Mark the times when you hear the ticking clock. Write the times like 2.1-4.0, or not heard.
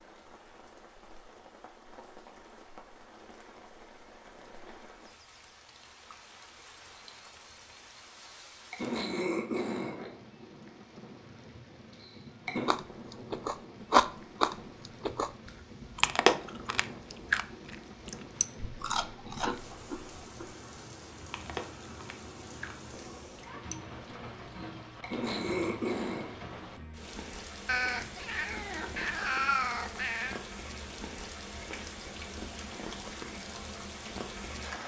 not heard.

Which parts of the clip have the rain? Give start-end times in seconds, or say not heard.
0.0-34.8.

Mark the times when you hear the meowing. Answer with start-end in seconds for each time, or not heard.
27.6-30.4.